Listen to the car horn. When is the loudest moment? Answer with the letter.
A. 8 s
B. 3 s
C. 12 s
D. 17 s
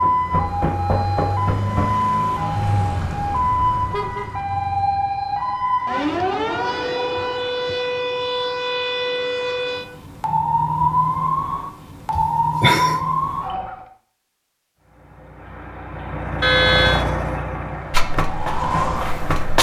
D.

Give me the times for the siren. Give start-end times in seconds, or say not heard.
0.0-13.8, 17.6-19.4.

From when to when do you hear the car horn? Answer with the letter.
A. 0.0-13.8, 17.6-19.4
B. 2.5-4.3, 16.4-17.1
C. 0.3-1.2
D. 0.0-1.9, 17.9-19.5
B.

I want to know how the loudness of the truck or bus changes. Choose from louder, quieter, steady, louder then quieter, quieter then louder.
louder then quieter.